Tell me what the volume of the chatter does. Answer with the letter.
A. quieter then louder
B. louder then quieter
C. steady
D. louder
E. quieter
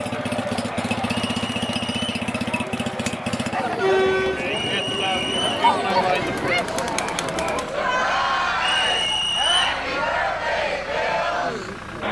D.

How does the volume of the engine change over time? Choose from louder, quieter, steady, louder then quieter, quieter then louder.
quieter.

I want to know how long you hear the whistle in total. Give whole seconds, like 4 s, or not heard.
3 s.